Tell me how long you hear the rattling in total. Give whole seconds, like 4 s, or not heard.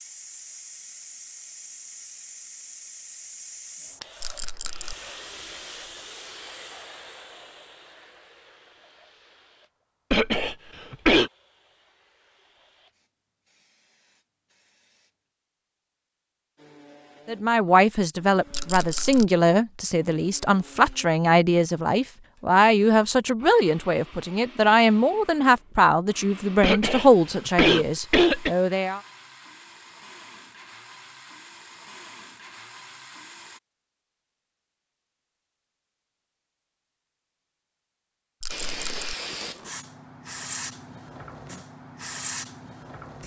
2 s.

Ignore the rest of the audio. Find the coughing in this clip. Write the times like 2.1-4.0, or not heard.
10.1-11.3, 26.6-28.5.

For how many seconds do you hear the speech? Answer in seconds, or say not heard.
12 s.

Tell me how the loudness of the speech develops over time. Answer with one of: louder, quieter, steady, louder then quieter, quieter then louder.
steady.